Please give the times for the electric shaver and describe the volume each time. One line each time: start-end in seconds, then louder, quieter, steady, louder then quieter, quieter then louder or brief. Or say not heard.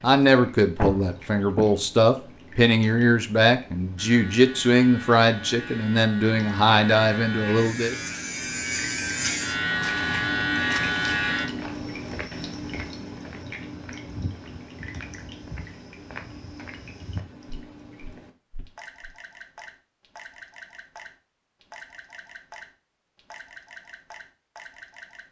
4.0-11.4 louder.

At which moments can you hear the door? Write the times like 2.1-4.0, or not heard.
0.8-1.8.